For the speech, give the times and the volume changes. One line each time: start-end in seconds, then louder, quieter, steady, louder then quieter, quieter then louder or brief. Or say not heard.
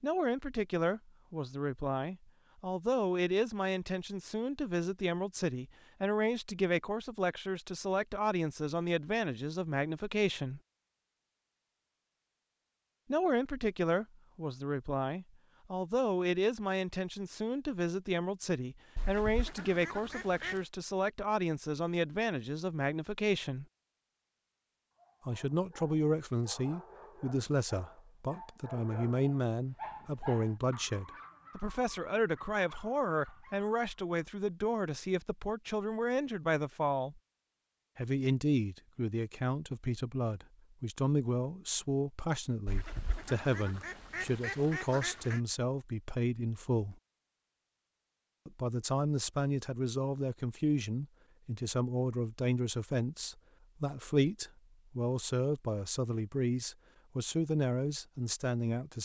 0.0-10.6 steady
13.1-23.6 steady
25.2-37.2 steady
38.0-47.0 steady
48.5-59.0 steady.